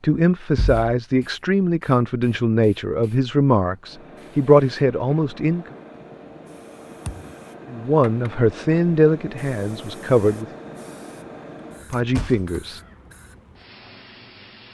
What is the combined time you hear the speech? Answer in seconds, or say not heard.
9 s.